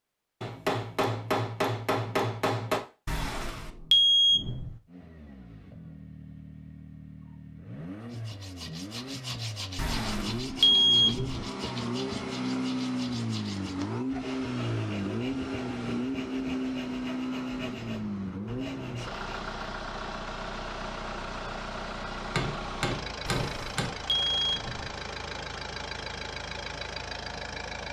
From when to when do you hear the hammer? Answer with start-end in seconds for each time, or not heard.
0.4-2.8, 22.4-23.9.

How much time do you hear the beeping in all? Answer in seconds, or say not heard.
5 s.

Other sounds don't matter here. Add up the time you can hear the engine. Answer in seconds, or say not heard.
23 s.